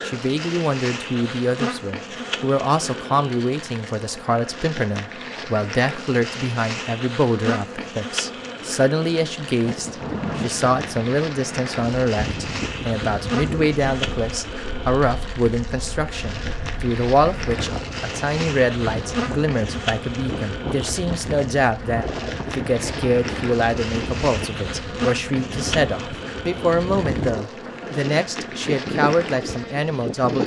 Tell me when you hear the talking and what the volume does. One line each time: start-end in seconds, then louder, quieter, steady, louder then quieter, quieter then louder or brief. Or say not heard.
0.0-30.4 steady.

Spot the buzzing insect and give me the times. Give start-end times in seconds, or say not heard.
0.0-30.4.